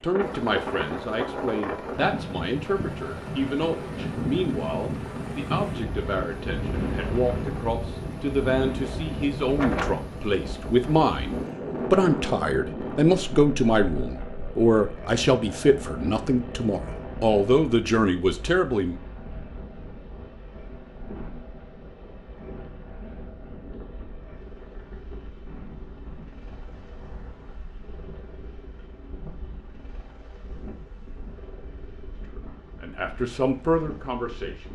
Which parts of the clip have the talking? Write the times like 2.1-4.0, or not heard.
0.0-18.9, 32.2-34.7.